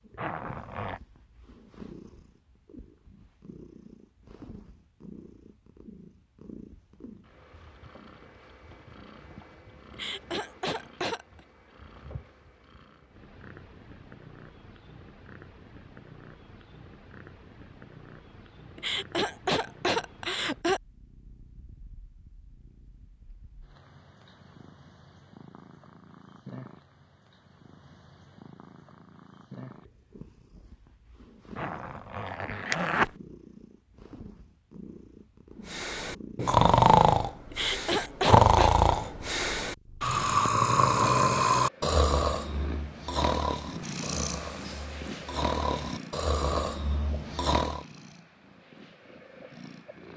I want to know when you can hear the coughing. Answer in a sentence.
The coughing can be heard from 9.9 to 11.2 s, from 18.8 to 20.8 s and from 37.5 to 38.8 s.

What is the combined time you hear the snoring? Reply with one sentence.
The snoring can be heard for 12 seconds in total.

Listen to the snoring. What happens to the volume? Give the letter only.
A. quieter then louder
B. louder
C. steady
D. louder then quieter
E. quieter
E.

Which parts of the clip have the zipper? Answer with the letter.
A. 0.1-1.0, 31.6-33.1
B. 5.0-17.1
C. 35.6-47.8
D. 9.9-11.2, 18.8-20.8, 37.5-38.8
A.